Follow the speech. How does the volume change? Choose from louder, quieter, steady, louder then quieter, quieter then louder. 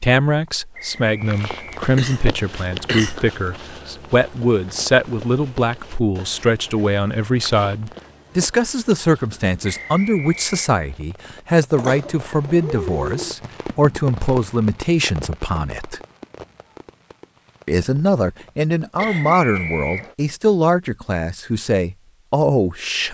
steady.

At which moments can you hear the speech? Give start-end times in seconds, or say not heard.
0.0-16.0, 17.6-23.0.